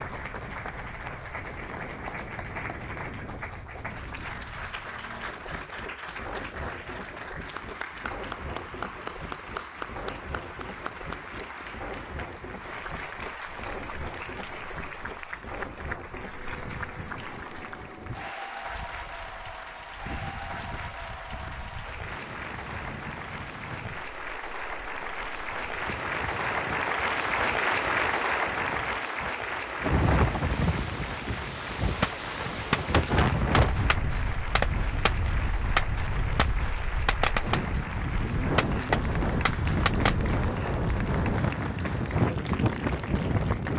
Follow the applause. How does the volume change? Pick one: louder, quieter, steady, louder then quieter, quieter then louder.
louder then quieter.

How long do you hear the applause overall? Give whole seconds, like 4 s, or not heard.
44 s.